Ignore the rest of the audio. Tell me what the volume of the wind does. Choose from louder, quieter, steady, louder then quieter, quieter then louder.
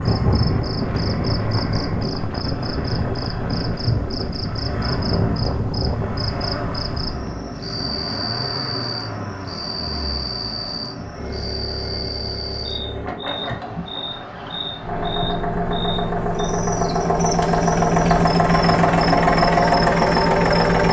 quieter.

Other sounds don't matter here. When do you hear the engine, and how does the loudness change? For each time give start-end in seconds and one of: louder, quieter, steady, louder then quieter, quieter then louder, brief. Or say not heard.
0.0-20.8 louder.